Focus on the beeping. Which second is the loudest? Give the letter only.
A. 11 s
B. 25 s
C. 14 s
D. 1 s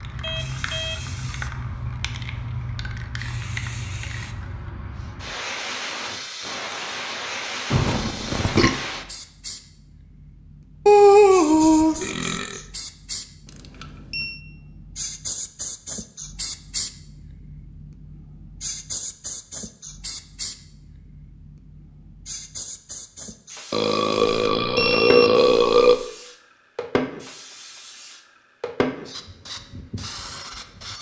B.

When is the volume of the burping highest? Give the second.
11 s.